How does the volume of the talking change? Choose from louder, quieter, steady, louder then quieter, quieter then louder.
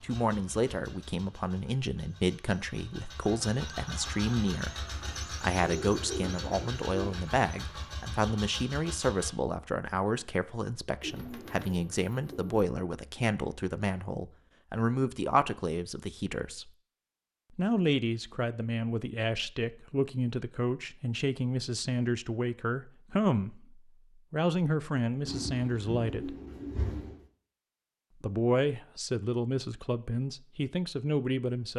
steady.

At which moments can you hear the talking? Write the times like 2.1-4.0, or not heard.
0.0-16.7, 17.6-26.4, 28.2-31.7.